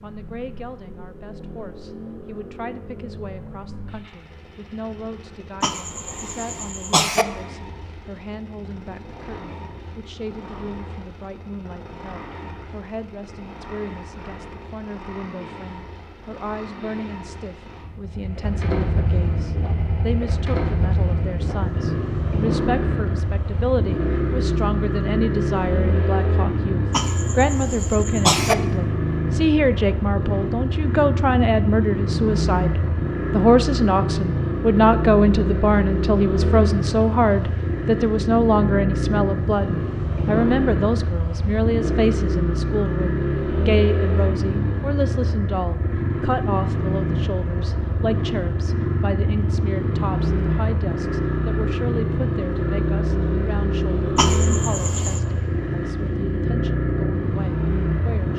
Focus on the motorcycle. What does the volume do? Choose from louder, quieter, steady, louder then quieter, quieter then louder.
louder.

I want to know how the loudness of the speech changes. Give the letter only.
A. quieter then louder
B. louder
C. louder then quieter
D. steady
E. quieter
C.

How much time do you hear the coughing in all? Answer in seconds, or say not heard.
4 s.